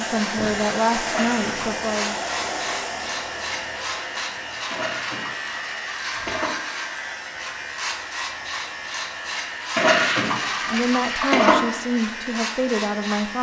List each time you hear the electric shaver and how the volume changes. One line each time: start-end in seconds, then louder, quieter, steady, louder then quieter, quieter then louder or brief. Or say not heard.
0.0-13.3 steady.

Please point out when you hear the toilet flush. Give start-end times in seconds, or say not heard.
1.1-1.8, 4.7-6.5, 9.8-11.6.